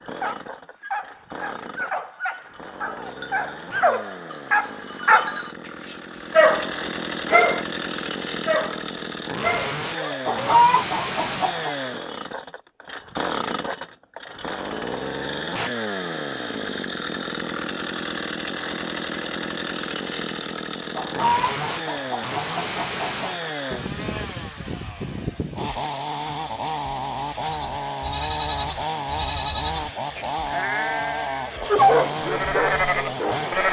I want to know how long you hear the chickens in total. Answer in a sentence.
The chickens can be heard for 4 seconds in total.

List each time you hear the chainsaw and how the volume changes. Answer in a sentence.
You can hear the chainsaw from 0.0 to 33.6 s, getting louder.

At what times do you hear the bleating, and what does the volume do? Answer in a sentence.
You can hear the bleating from 27.4 to 33.6 s, getting quieter then louder.